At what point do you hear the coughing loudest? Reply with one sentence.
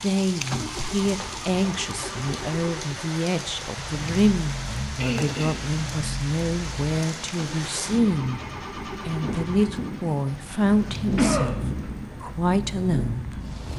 The loudest moment of the coughing is at 11 seconds.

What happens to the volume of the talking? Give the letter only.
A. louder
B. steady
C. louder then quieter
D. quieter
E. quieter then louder
B.